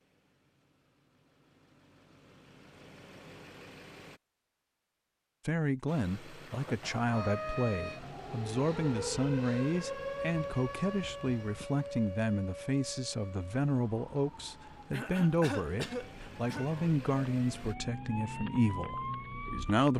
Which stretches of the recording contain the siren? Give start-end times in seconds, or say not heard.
7.1-19.9.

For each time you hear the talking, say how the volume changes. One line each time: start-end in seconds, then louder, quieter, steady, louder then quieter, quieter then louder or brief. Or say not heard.
5.5-19.9 steady.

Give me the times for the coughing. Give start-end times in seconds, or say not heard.
6.5-7.3, 14.9-16.7.